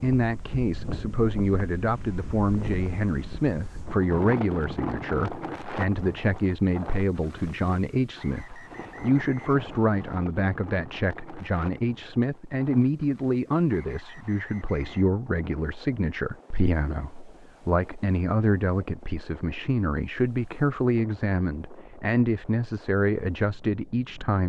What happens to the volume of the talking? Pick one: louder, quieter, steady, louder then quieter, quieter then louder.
steady.